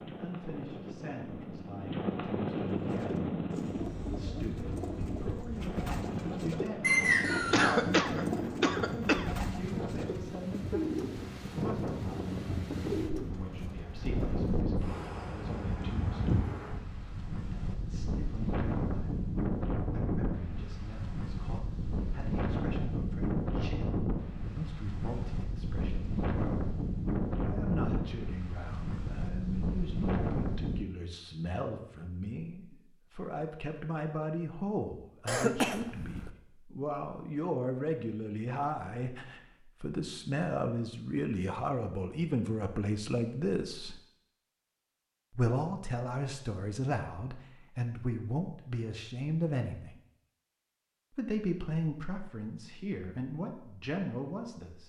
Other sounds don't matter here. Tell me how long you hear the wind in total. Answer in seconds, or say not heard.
31 s.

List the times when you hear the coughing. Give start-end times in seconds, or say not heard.
7.5-9.3, 35.2-36.3.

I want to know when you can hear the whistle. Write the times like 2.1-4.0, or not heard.
6.8-7.7.